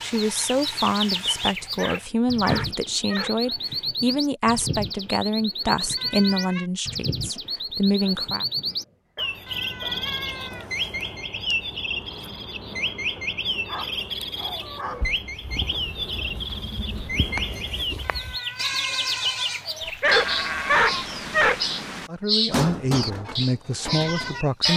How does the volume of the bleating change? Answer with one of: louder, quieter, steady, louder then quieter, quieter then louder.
louder.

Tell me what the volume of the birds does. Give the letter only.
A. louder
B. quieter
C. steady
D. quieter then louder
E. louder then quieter
C.